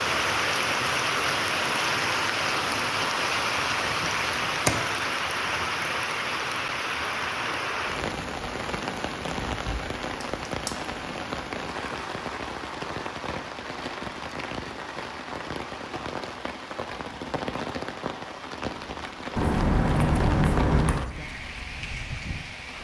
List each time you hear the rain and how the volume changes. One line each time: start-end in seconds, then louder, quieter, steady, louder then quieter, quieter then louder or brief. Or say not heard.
0.0-22.8 quieter.